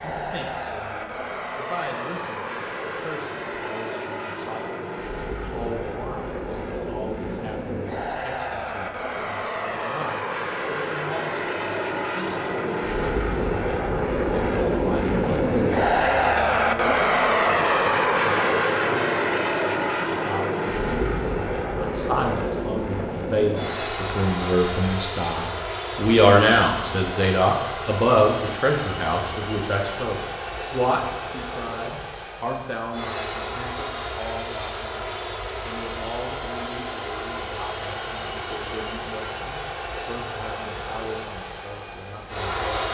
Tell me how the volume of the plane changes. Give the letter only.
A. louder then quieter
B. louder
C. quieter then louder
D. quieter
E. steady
A.